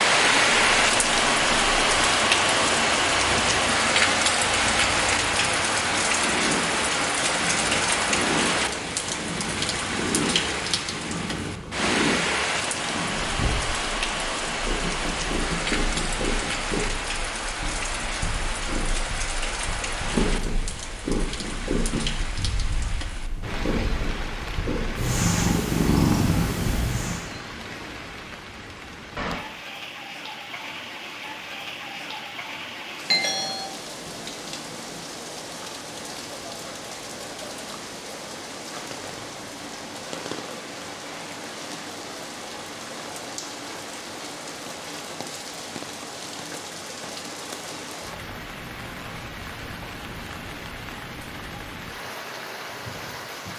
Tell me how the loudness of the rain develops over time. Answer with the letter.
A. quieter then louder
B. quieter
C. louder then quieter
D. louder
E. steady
B.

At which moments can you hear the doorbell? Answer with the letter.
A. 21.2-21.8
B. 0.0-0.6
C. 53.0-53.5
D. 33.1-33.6
D.